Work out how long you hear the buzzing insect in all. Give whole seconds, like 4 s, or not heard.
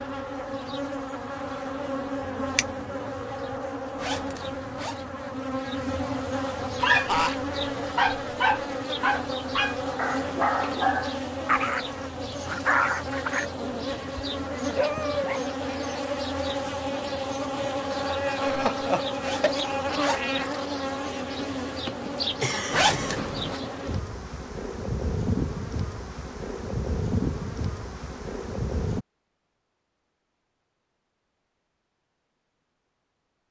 29 s.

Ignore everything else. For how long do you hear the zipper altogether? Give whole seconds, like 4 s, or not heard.
3 s.